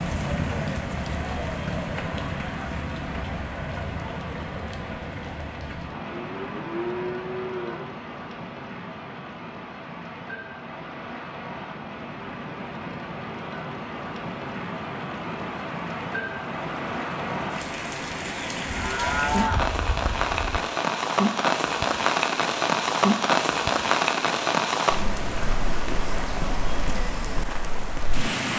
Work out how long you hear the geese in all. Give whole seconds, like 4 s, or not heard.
not heard.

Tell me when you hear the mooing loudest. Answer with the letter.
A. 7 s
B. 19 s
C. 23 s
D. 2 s
B.